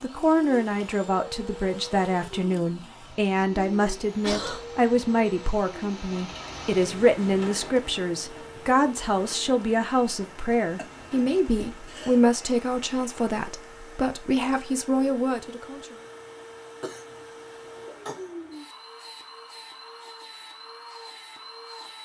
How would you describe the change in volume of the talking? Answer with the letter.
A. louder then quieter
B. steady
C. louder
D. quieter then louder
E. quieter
B.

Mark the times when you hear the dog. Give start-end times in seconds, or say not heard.
not heard.